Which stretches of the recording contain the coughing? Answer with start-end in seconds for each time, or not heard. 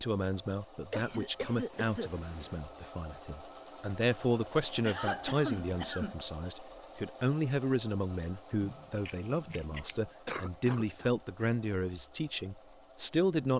0.9-2.1, 4.8-6.2, 10.2-11.1.